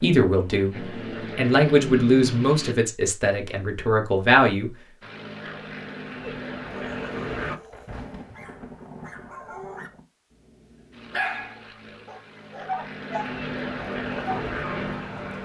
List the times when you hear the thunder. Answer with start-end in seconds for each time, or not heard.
7.5-10.1.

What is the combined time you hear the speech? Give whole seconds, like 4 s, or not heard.
4 s.